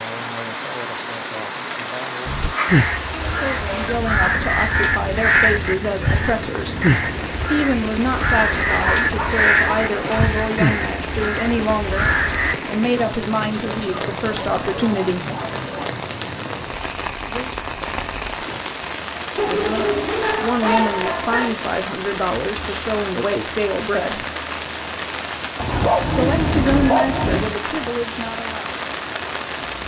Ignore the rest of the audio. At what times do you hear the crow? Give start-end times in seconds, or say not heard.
2.2-12.6.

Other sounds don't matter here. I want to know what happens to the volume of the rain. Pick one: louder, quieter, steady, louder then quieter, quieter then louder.
steady.